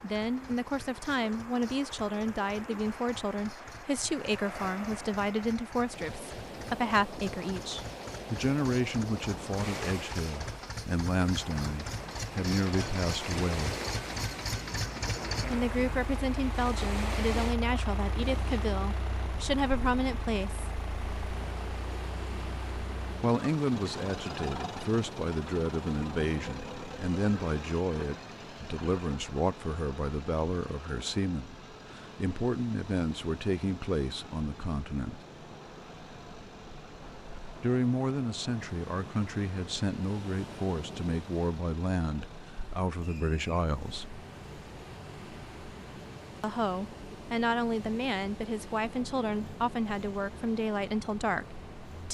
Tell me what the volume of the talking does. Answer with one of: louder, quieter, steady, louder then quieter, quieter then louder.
steady.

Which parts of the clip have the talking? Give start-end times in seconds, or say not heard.
0.0-13.8, 15.4-20.6, 23.2-35.2, 37.6-44.2, 46.4-52.0.